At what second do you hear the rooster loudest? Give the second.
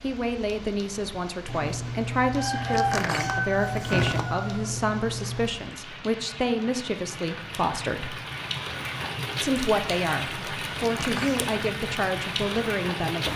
3 s.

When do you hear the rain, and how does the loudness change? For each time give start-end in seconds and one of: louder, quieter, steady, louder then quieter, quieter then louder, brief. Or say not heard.
0.0-13.3 louder.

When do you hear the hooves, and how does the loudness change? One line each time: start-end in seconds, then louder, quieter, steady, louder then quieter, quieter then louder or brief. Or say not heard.
not heard.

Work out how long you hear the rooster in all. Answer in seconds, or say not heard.
4 s.